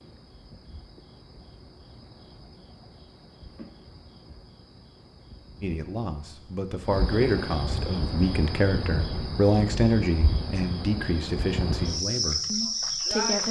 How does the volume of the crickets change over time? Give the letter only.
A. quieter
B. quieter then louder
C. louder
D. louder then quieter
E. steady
C.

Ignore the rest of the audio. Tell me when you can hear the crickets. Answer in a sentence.
You can hear the crickets from 0.0 to 13.4 s.